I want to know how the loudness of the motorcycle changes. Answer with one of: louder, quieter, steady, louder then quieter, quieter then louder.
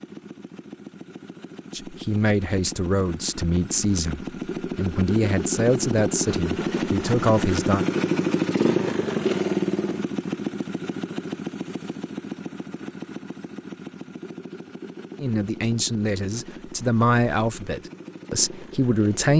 louder then quieter.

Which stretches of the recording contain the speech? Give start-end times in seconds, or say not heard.
1.7-7.8, 15.2-19.3.